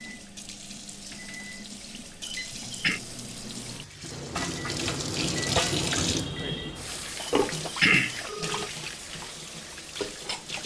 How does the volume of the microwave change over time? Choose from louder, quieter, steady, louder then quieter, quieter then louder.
louder.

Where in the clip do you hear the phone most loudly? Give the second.
8 s.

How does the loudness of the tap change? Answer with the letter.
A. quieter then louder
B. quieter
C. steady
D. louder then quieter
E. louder
D.